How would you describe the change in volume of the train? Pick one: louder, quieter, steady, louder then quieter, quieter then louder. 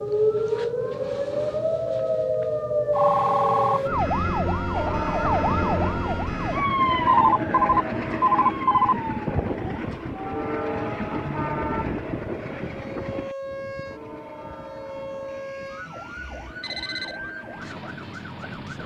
quieter.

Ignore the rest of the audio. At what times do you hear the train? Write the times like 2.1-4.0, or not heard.
4.7-18.8.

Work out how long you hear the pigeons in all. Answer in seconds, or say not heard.
not heard.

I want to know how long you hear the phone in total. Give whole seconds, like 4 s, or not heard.
5 s.